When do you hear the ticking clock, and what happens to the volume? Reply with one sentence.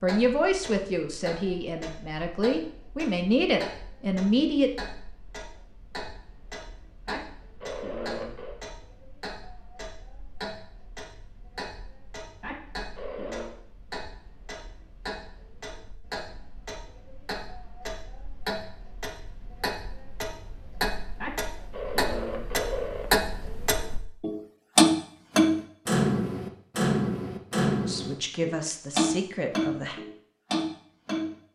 You can hear the ticking clock from 0.0 to 31.3 s, getting louder.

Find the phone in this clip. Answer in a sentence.
The phone can be heard from 7.0 to 8.6 s, from 12.4 to 13.6 s and from 21.2 to 23.1 s.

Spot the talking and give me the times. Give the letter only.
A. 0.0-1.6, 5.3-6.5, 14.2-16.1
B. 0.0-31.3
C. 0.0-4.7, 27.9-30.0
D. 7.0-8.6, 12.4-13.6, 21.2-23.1
C.